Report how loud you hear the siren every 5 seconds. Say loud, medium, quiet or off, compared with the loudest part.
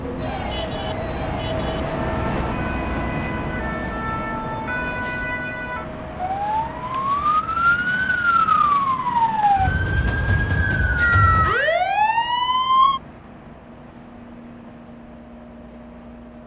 quiet, loud, loud, off.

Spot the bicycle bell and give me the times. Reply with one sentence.
The bicycle bell can be heard from 10.9 to 11.7 s.